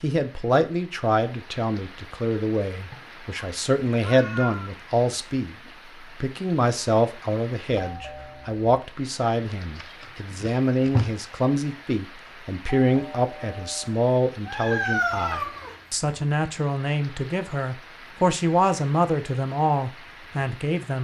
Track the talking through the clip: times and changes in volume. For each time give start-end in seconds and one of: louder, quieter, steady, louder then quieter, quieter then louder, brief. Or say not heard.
0.0-20.9 steady.